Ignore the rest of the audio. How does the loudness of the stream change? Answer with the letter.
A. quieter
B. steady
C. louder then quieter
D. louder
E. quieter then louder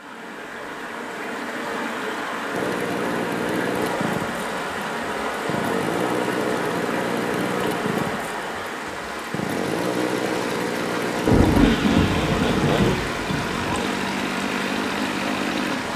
B.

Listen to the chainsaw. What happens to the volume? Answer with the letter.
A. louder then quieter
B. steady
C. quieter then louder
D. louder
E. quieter
B.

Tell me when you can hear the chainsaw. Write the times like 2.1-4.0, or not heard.
2.5-15.9.